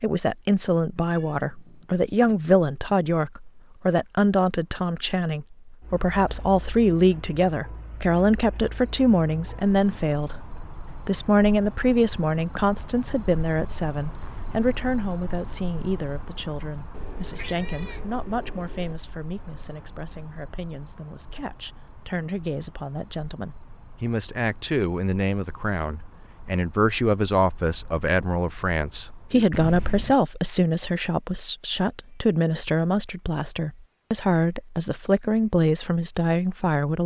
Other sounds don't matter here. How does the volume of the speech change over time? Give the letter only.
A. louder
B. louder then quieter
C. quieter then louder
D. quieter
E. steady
C.